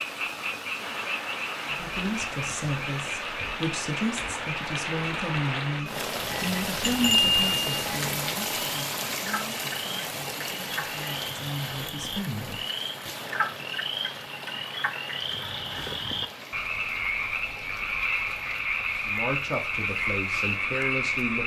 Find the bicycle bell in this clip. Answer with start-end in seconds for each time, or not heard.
6.8-7.8.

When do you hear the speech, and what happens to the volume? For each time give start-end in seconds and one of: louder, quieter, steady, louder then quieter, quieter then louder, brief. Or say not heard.
1.6-13.1 quieter then louder
19.1-21.4 brief.